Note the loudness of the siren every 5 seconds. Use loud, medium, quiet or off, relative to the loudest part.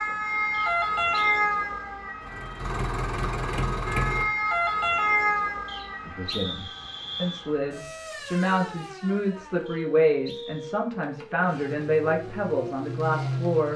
loud, medium, quiet.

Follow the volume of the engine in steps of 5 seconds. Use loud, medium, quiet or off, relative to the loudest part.
loud, off, loud.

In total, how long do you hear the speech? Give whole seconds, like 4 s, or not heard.
8 s.